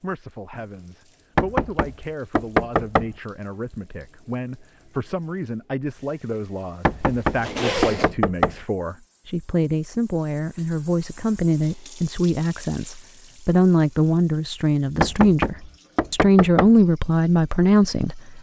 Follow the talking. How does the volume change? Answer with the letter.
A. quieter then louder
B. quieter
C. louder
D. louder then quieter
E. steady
C.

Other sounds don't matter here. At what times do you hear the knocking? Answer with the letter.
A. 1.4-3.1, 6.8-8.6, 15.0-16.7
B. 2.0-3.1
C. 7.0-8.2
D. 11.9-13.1
A.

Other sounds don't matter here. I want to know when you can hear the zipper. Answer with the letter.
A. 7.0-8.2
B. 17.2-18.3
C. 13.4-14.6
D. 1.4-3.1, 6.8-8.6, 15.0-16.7
A.